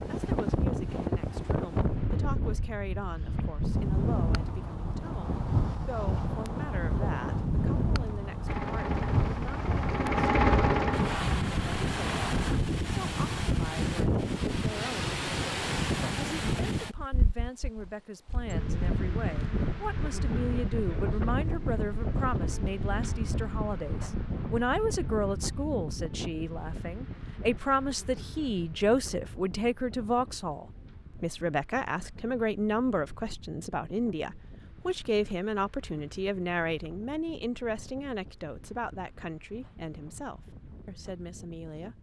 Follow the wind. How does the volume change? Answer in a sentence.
The loudness of the wind goes down.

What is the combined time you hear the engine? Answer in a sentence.
You can hear the engine for 4 seconds altogether.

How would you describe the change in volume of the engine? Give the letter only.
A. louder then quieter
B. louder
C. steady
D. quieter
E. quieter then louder
A.